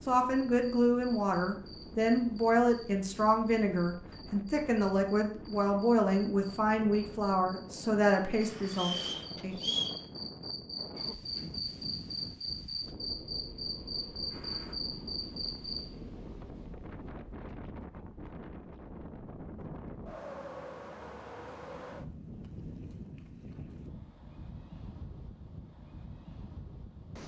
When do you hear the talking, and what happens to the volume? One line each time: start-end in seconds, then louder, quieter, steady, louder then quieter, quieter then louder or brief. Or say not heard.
0.1-9.7 steady.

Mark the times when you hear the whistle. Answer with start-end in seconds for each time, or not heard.
8.7-9.9.